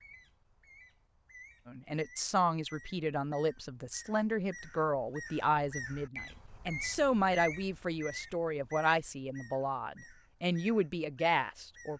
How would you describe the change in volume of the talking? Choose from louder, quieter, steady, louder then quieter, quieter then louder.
steady.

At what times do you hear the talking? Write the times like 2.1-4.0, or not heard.
1.6-11.9.